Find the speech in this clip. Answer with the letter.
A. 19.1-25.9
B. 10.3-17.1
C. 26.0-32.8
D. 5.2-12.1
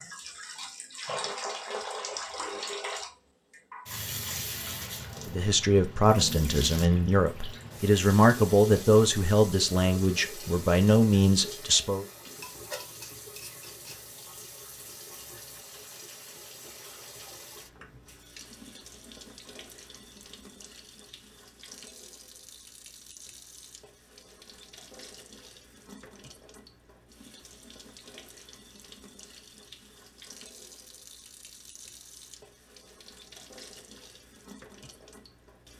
D.